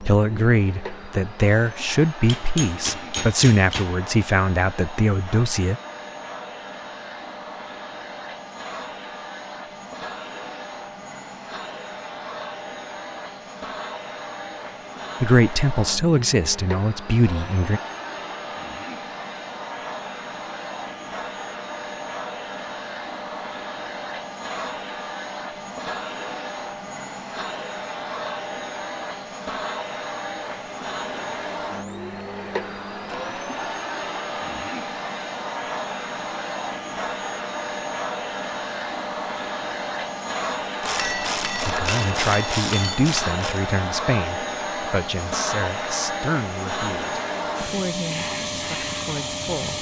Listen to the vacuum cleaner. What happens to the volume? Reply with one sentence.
The loudness of the vacuum cleaner goes up.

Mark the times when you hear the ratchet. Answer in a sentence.
The ratchet can be heard from 40.8 to 43.6 s.